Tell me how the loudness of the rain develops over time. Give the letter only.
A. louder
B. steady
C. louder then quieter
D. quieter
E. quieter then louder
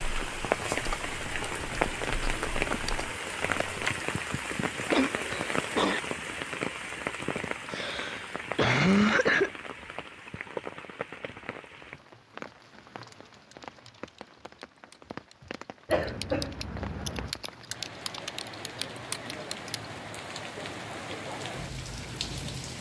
E.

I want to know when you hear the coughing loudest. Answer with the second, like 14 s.
9 s.